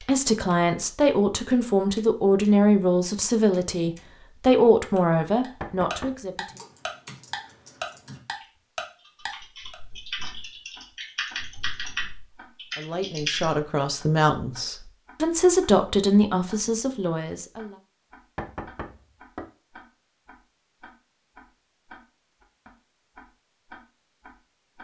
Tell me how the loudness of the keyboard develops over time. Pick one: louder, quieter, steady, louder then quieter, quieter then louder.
louder.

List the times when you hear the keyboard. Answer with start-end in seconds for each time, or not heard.
6.5-13.6.